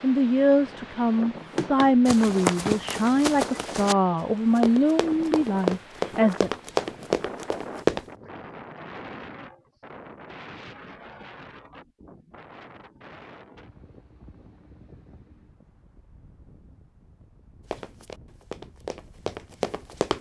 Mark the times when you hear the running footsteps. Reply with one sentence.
You can hear the running footsteps from 1.4 to 4.0 s, from 4.5 to 8.1 s and from 17.7 to 20.1 s.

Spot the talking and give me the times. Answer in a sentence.
You can hear the talking from 0.0 to 6.5 s.